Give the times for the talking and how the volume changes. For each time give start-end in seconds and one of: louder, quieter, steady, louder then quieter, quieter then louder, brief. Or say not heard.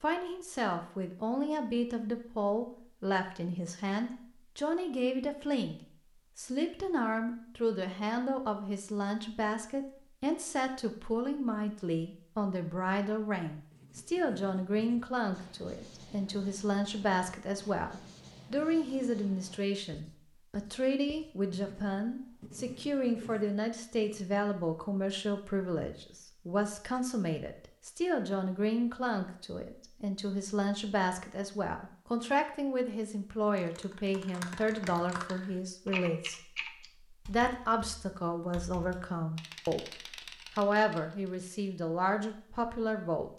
0.0-43.3 steady.